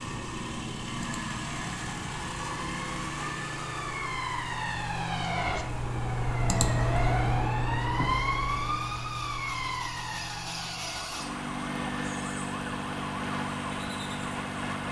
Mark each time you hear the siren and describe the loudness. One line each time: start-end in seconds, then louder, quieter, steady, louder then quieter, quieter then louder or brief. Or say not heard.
0.0-14.8 louder then quieter.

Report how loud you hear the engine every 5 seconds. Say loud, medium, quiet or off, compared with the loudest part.
loud, medium, loud.